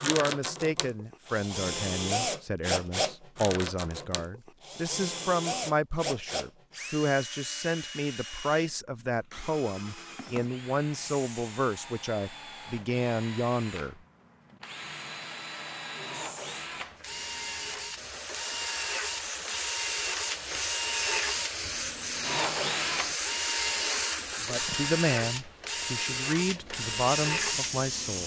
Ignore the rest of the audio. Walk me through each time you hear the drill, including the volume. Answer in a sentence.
The drill can be heard from 0.0 to 28.2 s, getting quieter then louder.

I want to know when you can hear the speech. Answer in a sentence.
The speech can be heard from 0.0 to 14.0 s and from 24.4 to 28.2 s.